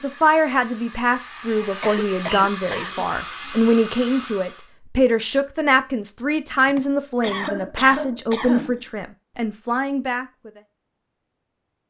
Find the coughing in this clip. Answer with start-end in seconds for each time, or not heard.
1.6-3.5, 6.7-8.8.